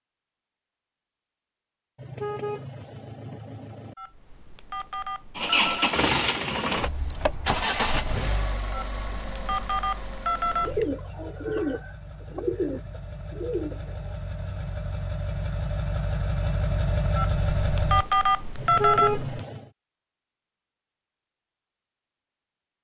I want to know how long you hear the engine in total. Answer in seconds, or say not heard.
13 s.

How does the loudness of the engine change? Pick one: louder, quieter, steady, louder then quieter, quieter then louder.
quieter then louder.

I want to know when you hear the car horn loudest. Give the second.
19 s.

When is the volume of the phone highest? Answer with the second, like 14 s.
19 s.